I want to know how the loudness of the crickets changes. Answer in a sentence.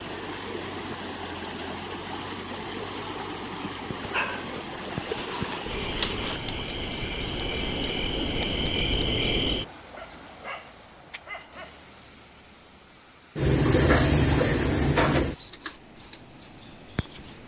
The loudness of the crickets goes up.